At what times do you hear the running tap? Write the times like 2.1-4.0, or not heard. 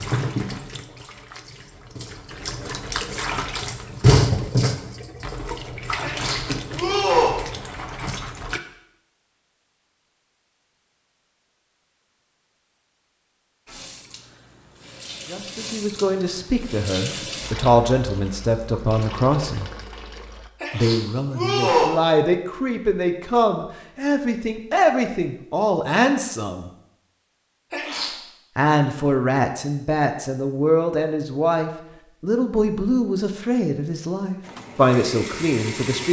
0.0-8.6, 13.7-20.5, 34.4-36.0.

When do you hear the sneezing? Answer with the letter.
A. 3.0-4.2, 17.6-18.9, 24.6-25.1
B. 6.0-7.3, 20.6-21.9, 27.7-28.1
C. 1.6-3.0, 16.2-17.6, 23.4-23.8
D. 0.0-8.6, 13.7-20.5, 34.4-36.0
B.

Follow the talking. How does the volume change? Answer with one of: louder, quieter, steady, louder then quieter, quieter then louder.
steady.